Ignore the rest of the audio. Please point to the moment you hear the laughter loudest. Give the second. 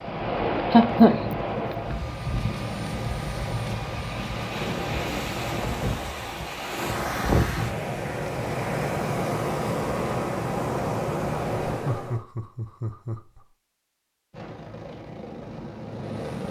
1 s.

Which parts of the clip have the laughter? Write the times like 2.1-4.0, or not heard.
0.6-1.6, 11.8-13.4.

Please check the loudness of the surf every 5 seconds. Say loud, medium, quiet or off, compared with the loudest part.
loud, loud, loud, off.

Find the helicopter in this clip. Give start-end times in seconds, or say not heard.
0.0-6.0, 14.3-16.4.